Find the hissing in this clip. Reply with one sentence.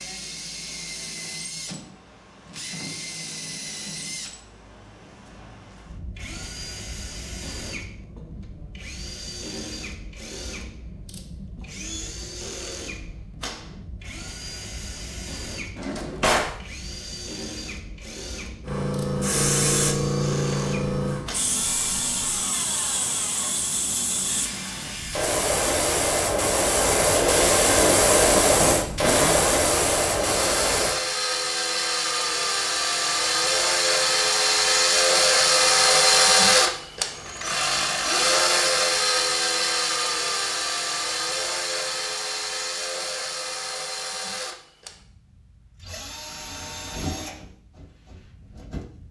You can hear the hissing from 18.6 to 31.0 s.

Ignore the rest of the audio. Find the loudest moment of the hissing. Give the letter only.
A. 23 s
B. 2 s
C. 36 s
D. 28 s
D.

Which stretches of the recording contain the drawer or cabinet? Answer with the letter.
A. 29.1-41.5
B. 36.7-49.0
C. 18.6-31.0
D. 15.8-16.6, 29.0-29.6
D.